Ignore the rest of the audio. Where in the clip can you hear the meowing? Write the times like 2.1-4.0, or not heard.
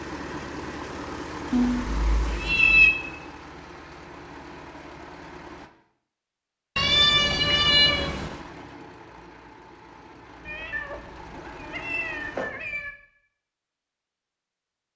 1.5-2.9, 6.8-8.4, 10.4-12.9.